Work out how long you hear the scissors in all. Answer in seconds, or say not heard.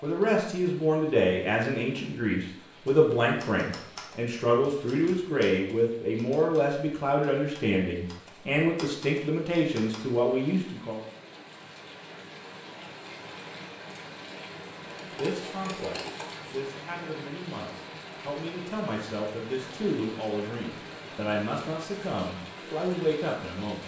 2 s.